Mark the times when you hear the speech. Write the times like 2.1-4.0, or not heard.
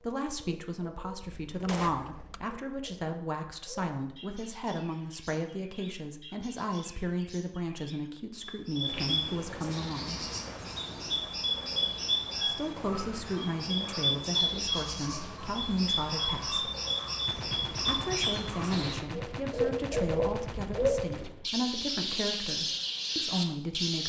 0.0-10.3, 12.4-16.7, 17.8-24.0.